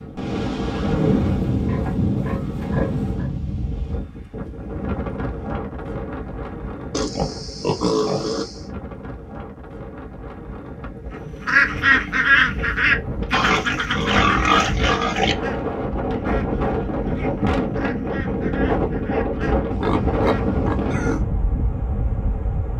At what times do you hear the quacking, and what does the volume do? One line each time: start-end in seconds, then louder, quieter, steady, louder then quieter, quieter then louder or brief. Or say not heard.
11.4-20.6 quieter.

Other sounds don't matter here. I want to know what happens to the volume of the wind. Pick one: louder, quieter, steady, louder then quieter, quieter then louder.
quieter then louder.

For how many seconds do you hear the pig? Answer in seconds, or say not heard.
8 s.